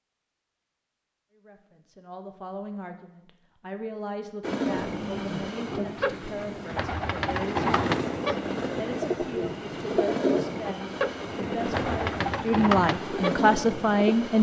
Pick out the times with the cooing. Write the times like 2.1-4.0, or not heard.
4.8-14.2.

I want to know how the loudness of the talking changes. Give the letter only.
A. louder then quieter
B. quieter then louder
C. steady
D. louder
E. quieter
D.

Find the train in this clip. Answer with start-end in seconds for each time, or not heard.
4.4-14.3.